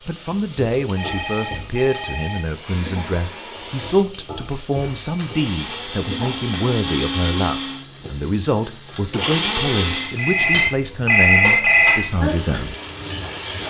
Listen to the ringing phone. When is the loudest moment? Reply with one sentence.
The volume of the ringing phone peaks at 11 seconds.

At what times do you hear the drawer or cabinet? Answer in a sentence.
The drawer or cabinet can't be heard in this clip.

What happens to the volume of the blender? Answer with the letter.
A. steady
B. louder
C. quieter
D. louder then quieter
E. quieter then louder
B.